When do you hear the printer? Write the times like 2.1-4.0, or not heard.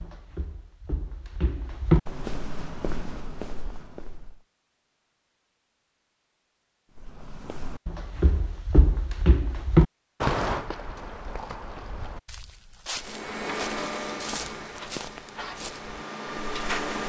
12.9-17.0.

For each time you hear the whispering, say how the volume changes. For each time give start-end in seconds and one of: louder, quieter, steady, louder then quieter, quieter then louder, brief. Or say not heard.
not heard.